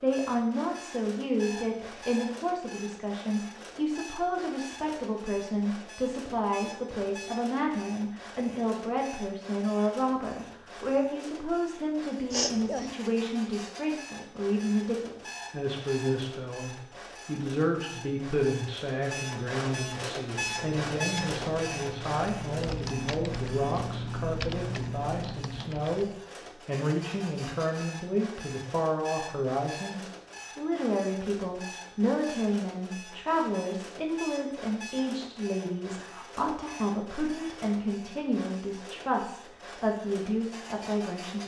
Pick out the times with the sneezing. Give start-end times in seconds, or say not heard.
12.3-12.9.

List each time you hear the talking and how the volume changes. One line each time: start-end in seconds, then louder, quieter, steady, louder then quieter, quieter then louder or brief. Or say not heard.
0.0-41.4 steady.